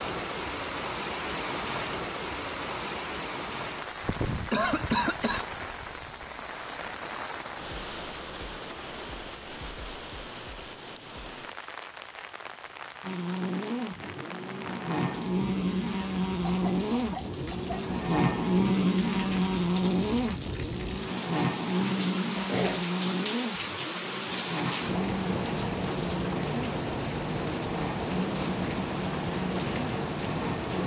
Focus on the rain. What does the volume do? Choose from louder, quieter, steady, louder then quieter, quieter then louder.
quieter then louder.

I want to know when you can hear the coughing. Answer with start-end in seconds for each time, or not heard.
4.5-5.5, 16.4-17.8, 22.4-22.9.